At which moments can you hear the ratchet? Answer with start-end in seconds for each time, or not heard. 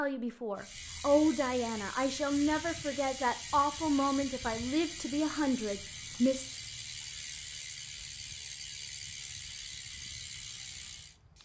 0.6-11.2.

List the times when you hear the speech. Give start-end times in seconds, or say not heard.
0.0-6.5.